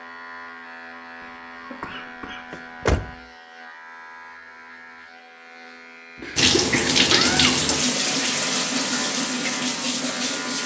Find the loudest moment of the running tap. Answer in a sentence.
The loudest moment of the running tap is at 7 seconds.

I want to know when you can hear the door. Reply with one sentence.
You can hear the door from 2.5 to 3.1 s and from 7.0 to 7.6 s.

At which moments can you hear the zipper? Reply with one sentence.
You can't hear the zipper here.